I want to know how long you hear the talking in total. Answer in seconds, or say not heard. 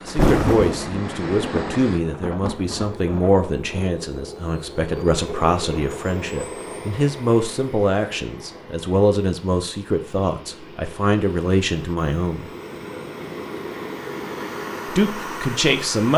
14 s.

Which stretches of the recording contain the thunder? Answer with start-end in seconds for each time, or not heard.
0.1-3.9.